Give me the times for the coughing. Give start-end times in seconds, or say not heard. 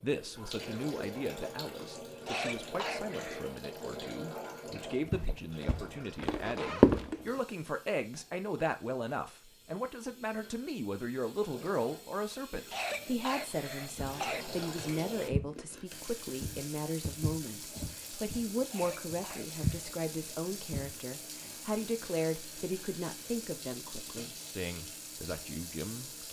2.2-3.5, 12.7-14.4, 18.7-19.6.